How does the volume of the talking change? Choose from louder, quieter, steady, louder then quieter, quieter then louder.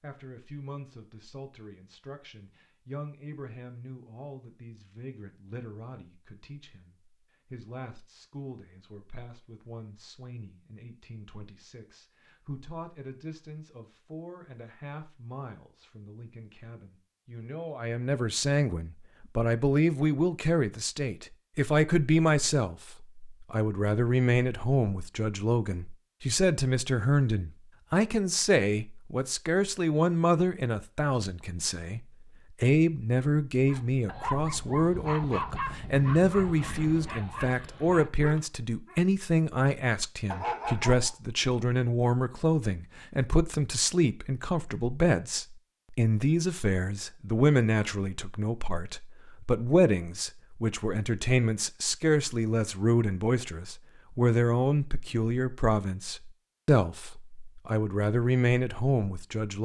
louder.